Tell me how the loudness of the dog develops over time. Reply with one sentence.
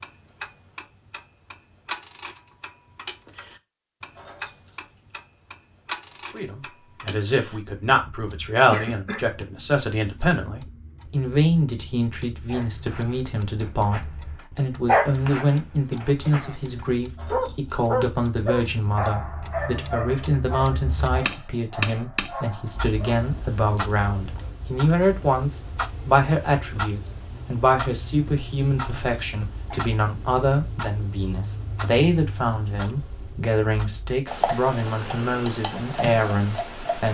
The volume of the dog goes up, then down.